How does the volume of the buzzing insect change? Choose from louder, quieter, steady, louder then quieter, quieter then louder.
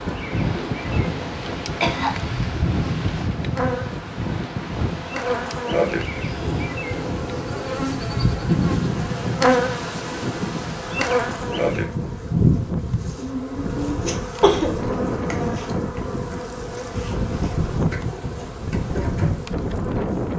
louder then quieter.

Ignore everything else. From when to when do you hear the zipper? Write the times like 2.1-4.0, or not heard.
not heard.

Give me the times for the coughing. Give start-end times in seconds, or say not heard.
1.6-2.1, 13.2-14.8.